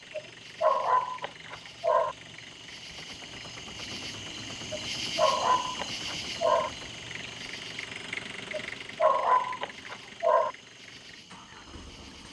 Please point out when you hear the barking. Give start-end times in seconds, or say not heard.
0.1-2.1, 4.7-6.7, 8.5-10.5.